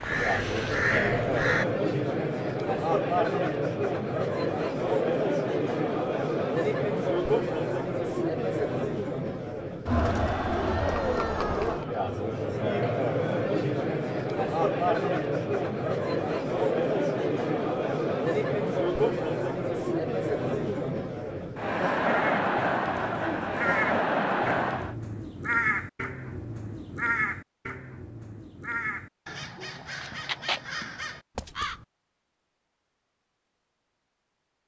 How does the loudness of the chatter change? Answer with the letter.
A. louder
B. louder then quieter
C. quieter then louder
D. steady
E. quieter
D.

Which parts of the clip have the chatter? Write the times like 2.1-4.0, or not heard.
0.0-24.9.